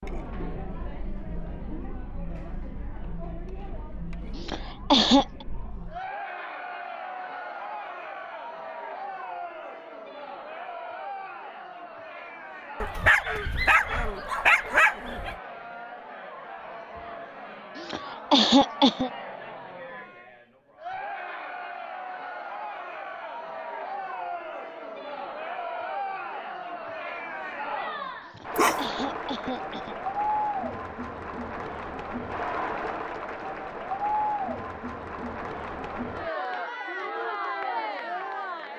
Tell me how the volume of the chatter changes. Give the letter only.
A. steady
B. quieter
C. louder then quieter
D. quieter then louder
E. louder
E.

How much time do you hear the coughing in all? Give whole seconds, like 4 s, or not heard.
4 s.